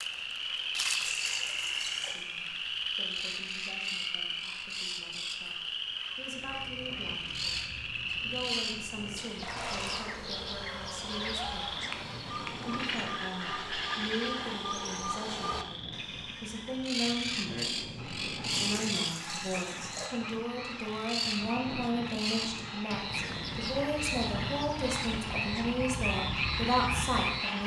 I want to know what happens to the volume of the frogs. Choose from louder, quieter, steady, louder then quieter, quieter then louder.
quieter then louder.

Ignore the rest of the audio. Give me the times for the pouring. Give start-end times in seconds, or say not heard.
1.0-2.2, 9.4-10.1, 18.5-20.1.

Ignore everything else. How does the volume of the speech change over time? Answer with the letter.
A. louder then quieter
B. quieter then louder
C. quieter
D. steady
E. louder
E.